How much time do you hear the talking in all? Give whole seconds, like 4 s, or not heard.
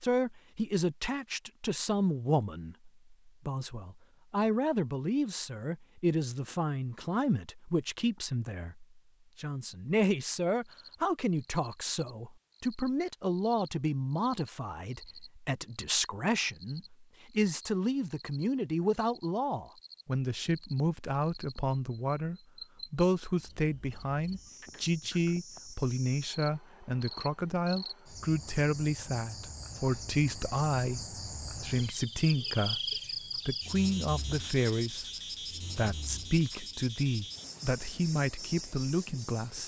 39 s.